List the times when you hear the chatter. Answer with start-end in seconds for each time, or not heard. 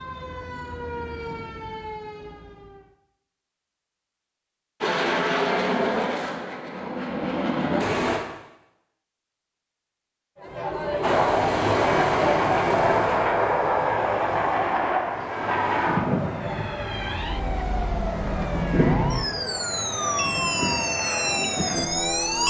10.3-22.4.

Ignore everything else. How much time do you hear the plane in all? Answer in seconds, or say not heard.
15 s.